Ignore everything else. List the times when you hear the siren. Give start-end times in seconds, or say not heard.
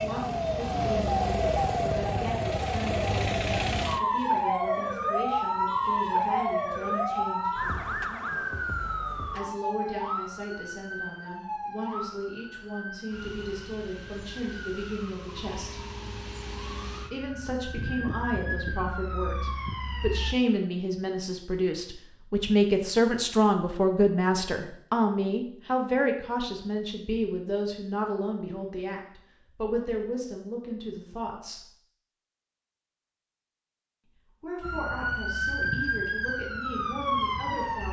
0.0-20.4, 34.6-37.8.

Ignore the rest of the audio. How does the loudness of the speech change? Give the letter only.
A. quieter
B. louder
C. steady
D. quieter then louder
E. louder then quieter
E.